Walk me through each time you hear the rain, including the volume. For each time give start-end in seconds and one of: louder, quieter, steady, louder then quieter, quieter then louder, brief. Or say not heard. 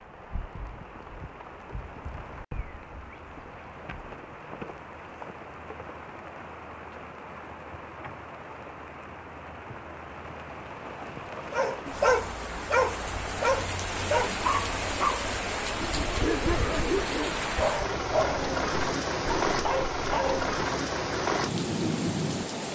0.0-22.7 louder.